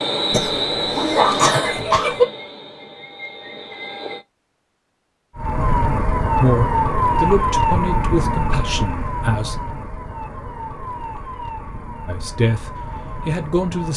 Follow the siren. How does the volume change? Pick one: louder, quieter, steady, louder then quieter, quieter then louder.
quieter.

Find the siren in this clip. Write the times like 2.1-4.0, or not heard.
5.3-13.9.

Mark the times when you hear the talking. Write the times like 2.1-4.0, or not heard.
6.4-9.6, 12.1-13.9.